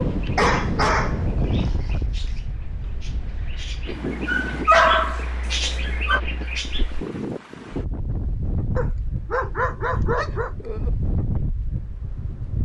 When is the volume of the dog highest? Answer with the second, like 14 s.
5 s.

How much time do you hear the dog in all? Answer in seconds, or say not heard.
5 s.